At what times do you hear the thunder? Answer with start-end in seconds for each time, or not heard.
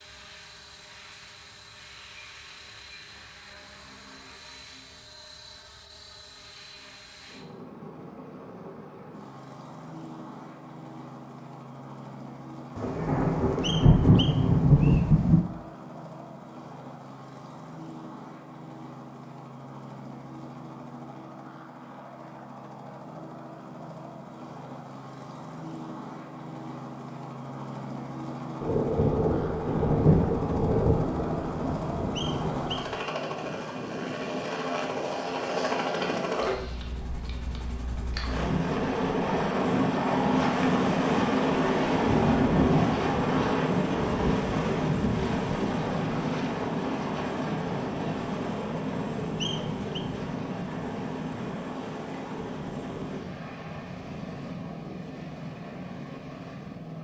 12.8-15.4, 28.6-33.0, 41.9-45.3.